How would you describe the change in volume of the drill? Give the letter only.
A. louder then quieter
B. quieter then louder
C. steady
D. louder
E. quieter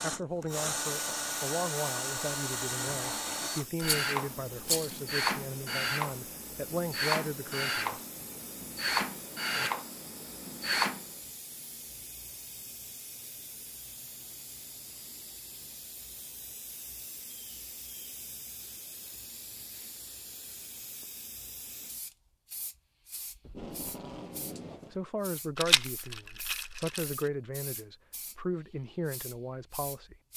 C.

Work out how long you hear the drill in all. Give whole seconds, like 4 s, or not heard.
11 s.